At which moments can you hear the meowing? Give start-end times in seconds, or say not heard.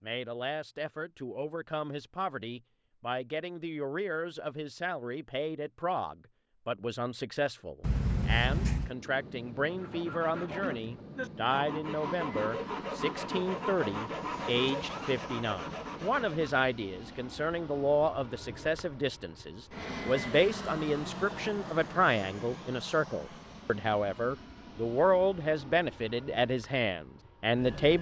7.8-8.9, 14.4-15.2.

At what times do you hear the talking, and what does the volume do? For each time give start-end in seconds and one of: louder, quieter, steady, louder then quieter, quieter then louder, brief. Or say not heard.
0.0-27.9 louder.